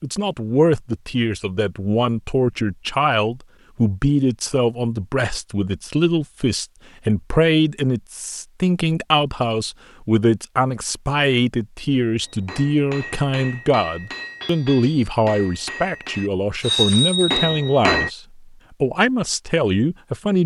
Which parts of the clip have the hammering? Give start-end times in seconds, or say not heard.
12.2-18.1.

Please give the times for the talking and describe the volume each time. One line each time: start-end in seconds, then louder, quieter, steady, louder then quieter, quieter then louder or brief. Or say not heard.
0.0-20.4 steady.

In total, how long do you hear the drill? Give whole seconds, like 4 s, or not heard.
not heard.